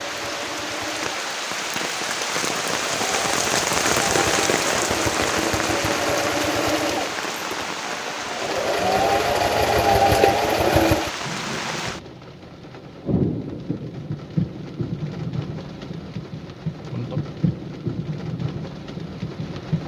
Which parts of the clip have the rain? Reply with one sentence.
You can hear the rain from 0.0 to 19.8 s.